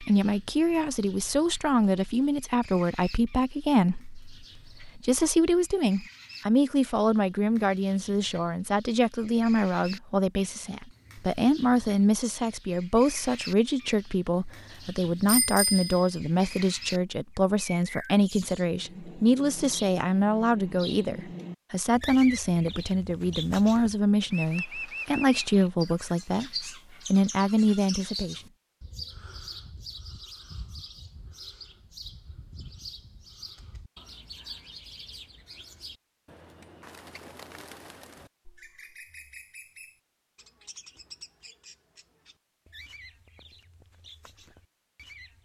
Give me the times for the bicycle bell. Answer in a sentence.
You can hear the bicycle bell from 15.2 to 16.1 s.